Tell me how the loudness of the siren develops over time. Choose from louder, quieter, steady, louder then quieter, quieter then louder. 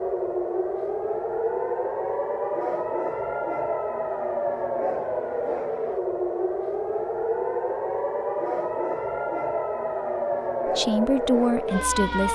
steady.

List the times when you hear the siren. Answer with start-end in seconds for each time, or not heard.
0.0-12.2.